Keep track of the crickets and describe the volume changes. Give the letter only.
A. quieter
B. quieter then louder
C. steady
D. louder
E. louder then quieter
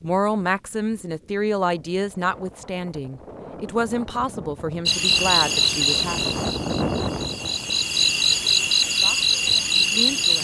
B.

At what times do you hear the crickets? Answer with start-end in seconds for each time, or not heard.
4.8-10.3.